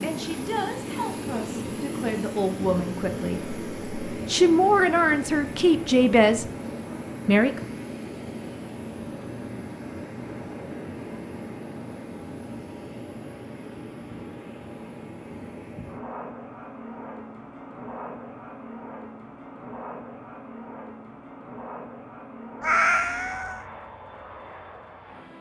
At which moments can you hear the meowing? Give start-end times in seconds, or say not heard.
22.6-23.6.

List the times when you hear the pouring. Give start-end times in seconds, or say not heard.
not heard.